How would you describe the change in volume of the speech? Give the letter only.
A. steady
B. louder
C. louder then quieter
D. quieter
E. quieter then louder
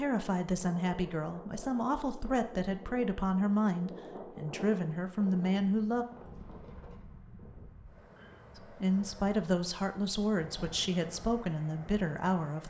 A.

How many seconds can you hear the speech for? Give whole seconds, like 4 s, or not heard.
10 s.